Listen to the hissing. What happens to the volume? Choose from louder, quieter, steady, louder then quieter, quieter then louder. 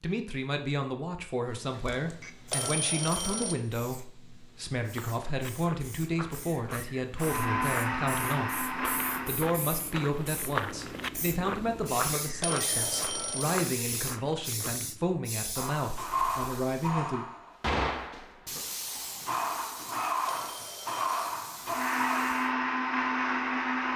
louder.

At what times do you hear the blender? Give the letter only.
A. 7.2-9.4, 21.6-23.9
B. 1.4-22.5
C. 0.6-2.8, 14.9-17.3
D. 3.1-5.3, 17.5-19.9
A.